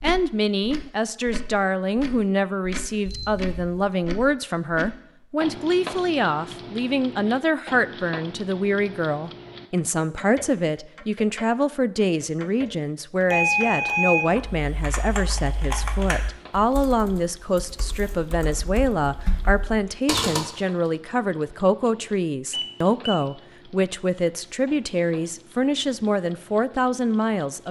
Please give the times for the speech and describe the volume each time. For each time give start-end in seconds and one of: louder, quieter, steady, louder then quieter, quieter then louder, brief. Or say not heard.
0.0-27.6 steady.